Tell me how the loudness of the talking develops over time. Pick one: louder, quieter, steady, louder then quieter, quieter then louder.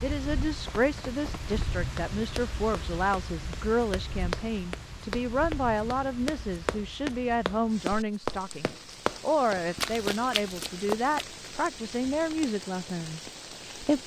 steady.